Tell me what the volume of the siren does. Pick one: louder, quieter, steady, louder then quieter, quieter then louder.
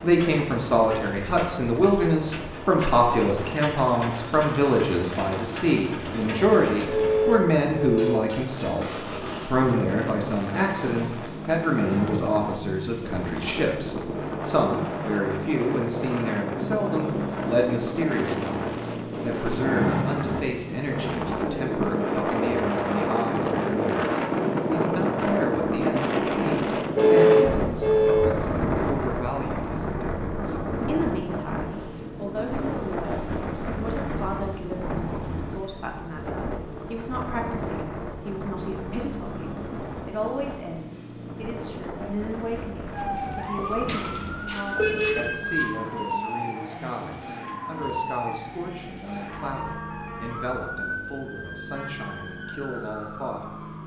quieter.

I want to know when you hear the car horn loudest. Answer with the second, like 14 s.
27 s.